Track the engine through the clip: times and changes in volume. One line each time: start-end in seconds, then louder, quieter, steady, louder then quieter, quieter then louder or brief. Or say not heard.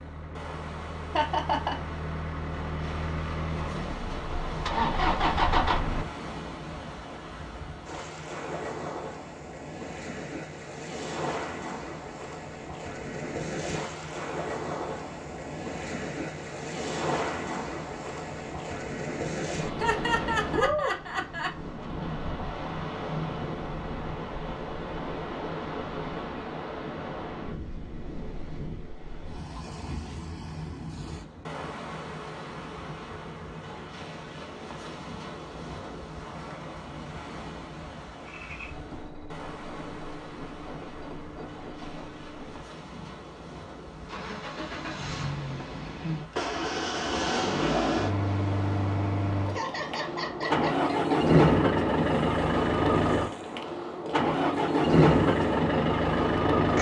0.0-6.0 louder
38.2-56.7 louder.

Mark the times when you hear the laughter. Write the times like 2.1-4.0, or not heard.
1.1-1.8, 19.8-21.6, 49.5-51.1.